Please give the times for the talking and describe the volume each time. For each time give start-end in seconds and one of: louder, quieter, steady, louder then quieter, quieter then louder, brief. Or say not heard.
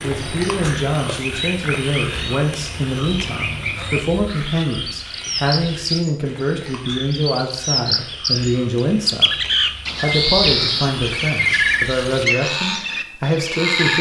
0.0-13.9 steady.